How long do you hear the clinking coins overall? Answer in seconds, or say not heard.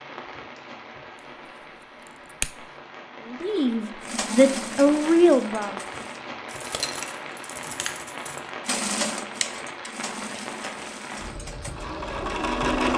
2 s.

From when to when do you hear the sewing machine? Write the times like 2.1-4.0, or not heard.
4.0-6.2, 8.7-12.9.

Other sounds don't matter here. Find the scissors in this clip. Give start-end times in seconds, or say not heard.
2.0-2.6, 9.4-10.4.